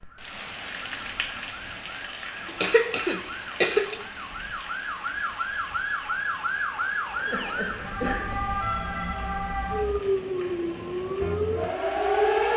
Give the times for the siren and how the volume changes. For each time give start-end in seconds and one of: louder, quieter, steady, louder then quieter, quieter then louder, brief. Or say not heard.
0.0-12.5 louder.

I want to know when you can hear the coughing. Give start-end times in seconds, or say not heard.
2.5-4.0, 7.2-8.4.